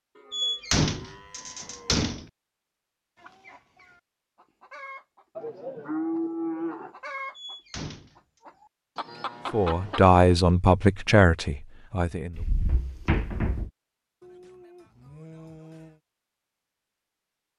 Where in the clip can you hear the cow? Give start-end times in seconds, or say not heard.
0.1-2.1, 5.3-7.0, 9.1-10.0, 14.2-16.0.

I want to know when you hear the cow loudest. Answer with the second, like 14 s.
6 s.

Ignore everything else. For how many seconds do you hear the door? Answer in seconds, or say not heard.
4 s.